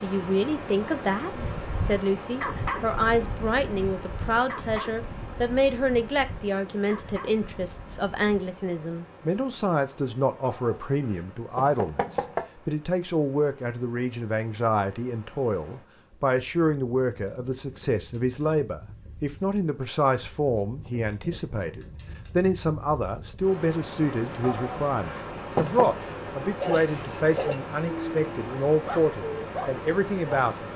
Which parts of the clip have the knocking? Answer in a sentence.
You can hear the knocking from 10.6 to 12.4 s and from 24.4 to 25.9 s.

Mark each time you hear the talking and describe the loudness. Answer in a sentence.
The talking can be heard from 0.0 to 30.7 s, at a steady volume.